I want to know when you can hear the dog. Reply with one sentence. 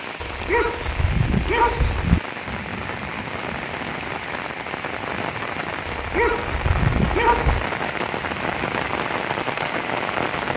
You can hear the dog from 0.2 to 2.2 s and from 5.8 to 7.7 s.